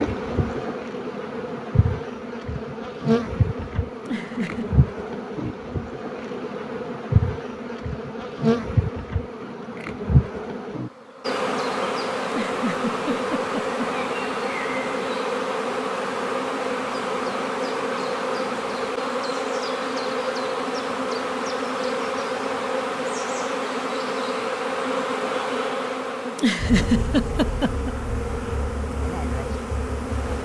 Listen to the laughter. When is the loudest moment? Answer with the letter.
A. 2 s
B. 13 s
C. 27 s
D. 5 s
C.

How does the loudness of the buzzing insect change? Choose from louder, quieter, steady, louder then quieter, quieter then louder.
steady.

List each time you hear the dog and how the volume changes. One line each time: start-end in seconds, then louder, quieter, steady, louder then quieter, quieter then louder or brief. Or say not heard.
not heard.